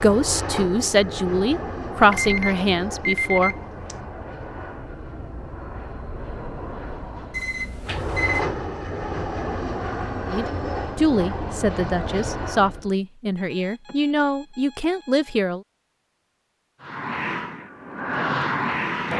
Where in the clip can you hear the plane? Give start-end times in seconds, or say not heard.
0.0-12.9, 16.8-19.1.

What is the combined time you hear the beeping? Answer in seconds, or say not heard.
5 s.